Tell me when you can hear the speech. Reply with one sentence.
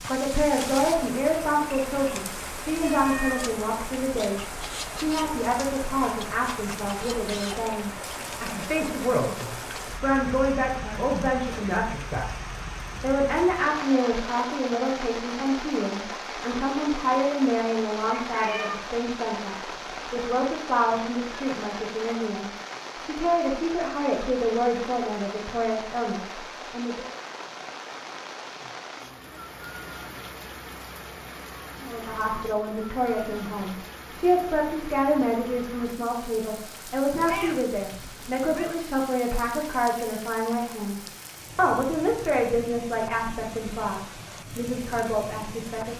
You can hear the speech from 0.1 to 27.1 s and from 31.8 to 45.9 s.